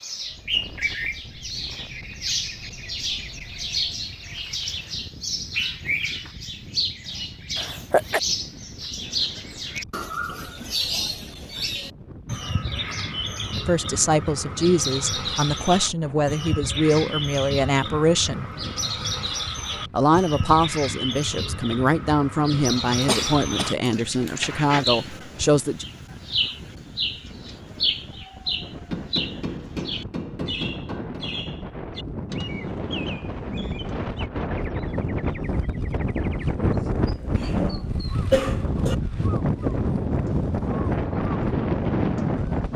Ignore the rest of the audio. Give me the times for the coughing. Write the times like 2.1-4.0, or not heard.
7.5-8.2, 23.0-24.9, 37.3-39.0.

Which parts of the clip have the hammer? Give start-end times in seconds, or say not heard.
28.9-31.2.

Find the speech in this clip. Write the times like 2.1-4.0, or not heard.
13.6-18.4, 19.9-25.9.